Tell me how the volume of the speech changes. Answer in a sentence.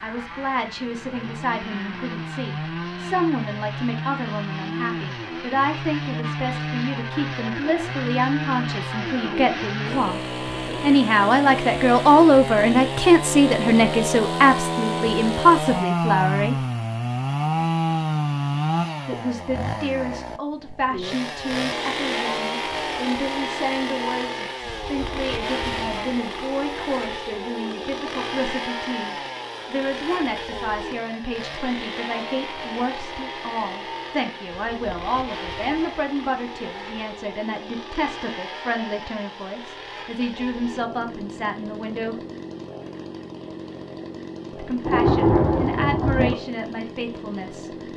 The loudness of the speech goes up, then down.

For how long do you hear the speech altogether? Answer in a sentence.
You can hear the speech for 43 seconds altogether.